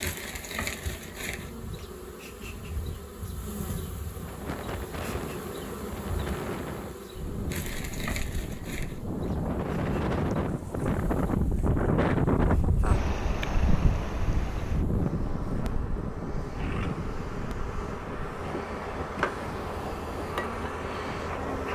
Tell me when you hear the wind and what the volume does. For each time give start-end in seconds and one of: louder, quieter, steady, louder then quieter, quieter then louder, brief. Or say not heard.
4.2-21.6 louder then quieter.